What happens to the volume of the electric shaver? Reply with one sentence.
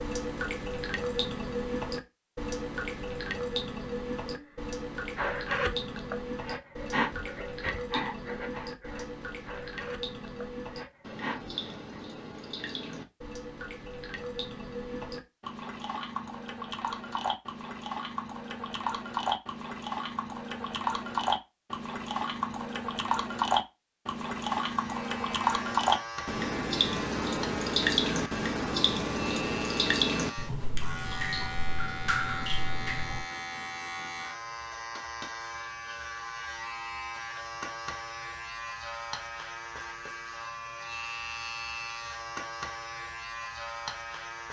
The loudness of the electric shaver stays about the same.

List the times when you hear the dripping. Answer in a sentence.
You can hear the dripping from 0.0 to 33.2 s.